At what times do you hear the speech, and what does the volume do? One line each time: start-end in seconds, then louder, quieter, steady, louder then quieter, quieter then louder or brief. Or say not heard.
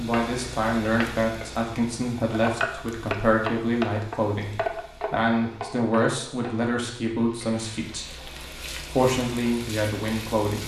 0.0-10.6 steady.